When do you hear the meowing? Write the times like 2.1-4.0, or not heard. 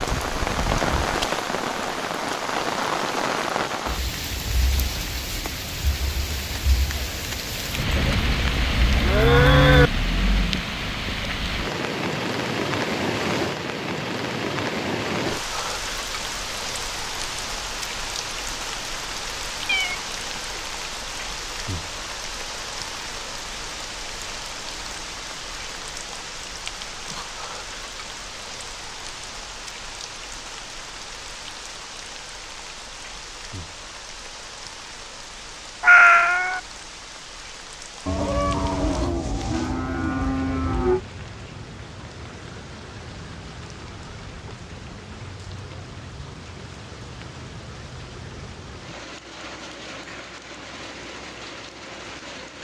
19.6-20.6, 35.8-36.6.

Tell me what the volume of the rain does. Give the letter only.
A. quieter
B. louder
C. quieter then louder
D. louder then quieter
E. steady
A.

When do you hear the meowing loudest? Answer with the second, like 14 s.
36 s.